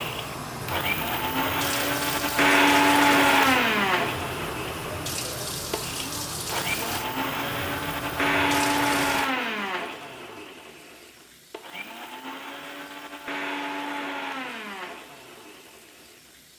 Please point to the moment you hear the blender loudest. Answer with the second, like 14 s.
3 s.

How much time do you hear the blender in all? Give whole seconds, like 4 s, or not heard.
16 s.